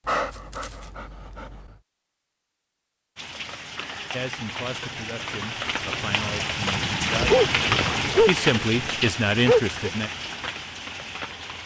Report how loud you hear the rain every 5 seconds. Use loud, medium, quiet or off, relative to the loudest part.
medium, loud, medium.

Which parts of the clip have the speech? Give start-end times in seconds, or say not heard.
4.1-7.3, 8.2-10.1.